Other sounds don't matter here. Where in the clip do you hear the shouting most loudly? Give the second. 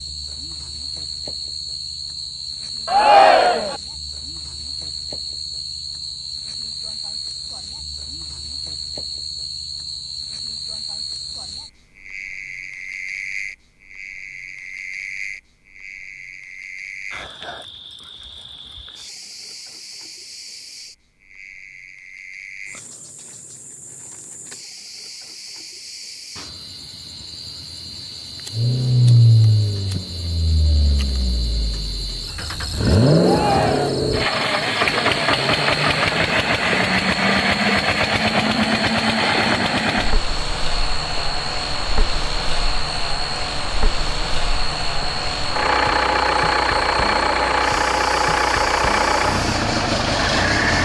3 s.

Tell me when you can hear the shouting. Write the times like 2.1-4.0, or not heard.
2.9-3.8, 33.2-34.0.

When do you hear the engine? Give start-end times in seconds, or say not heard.
28.5-50.7.